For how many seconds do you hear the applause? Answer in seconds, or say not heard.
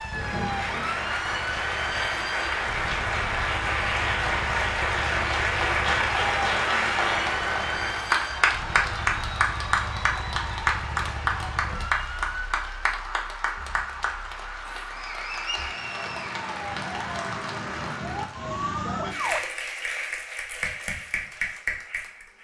22 s.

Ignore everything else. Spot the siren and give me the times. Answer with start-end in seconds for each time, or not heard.
0.0-19.4.